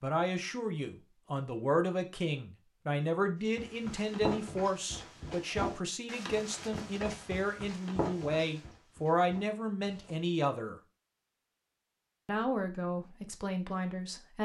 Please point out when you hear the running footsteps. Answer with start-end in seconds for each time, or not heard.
3.5-10.3.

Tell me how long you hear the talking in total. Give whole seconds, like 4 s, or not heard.
13 s.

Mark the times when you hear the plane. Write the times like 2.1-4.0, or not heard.
not heard.